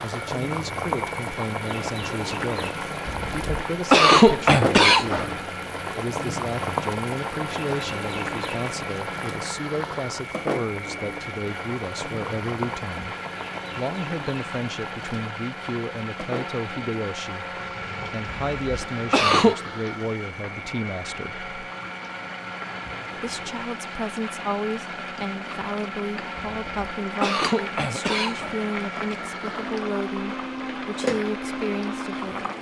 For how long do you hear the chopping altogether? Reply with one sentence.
The chopping can't be heard in this clip.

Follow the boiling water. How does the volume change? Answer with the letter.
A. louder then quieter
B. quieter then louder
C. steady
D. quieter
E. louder
B.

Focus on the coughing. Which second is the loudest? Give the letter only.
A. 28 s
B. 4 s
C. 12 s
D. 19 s
B.